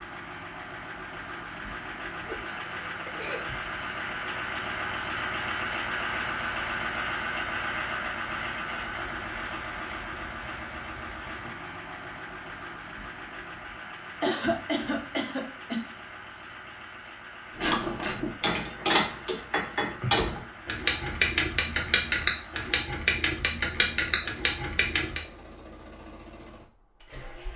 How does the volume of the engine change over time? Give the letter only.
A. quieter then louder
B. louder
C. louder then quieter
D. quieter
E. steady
D.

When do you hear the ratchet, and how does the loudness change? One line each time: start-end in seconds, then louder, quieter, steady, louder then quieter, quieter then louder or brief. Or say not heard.
17.6-25.2 steady.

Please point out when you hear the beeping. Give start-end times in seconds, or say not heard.
not heard.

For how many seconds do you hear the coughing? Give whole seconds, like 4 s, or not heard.
3 s.